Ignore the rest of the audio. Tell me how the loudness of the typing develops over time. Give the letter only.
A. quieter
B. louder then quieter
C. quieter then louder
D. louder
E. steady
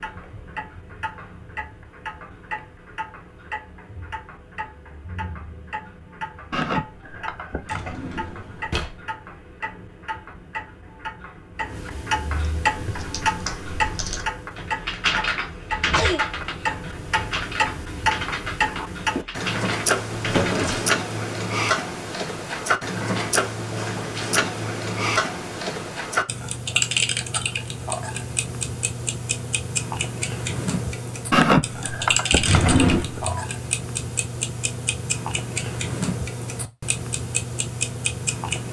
B.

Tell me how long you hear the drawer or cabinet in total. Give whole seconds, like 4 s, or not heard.
3 s.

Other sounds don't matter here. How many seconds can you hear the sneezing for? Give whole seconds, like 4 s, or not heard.
5 s.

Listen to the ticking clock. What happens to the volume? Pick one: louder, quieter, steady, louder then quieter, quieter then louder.
louder.